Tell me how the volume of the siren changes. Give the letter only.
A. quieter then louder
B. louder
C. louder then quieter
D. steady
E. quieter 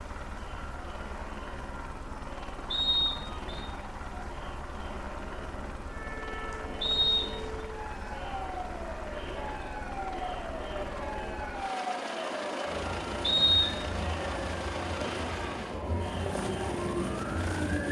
B.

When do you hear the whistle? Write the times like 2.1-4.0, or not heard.
2.7-3.6, 6.8-7.5, 13.2-13.8.